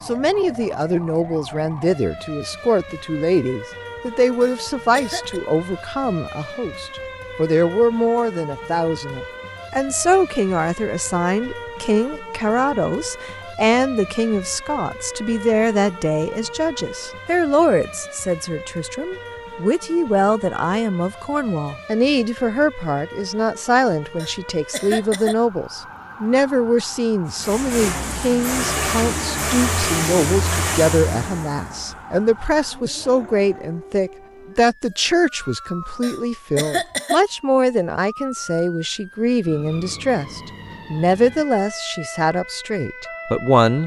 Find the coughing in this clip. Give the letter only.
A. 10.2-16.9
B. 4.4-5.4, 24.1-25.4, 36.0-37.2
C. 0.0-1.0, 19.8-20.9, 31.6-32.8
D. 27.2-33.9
B.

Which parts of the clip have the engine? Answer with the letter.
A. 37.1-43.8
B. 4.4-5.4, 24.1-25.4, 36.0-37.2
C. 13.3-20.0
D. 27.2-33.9
D.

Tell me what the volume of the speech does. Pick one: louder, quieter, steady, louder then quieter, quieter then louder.
steady.